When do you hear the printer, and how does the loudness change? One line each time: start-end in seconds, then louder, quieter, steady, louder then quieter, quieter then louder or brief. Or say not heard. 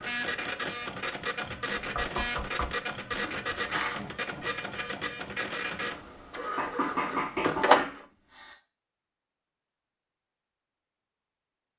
0.0-8.1 steady.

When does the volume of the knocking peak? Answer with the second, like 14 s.
7 s.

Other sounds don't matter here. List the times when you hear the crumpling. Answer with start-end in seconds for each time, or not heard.
3.2-4.0.